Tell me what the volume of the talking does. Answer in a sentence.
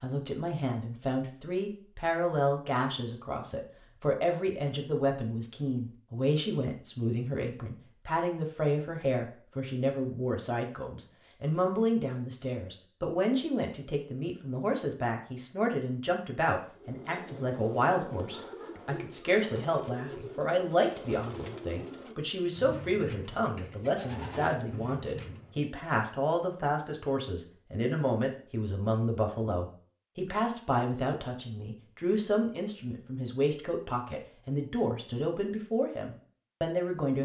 The loudness of the talking stays about the same.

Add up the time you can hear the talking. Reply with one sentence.
You can hear the talking for 37 seconds altogether.